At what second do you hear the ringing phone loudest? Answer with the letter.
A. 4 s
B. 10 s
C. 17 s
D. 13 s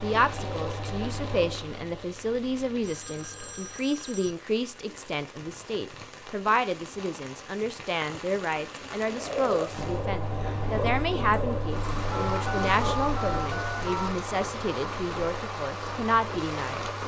D.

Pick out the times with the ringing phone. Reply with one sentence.
The ringing phone can be heard from 2.8 to 4.3 s and from 12.1 to 14.1 s.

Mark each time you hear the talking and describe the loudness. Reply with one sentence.
The talking can be heard from 0.0 to 16.9 s, at a steady volume.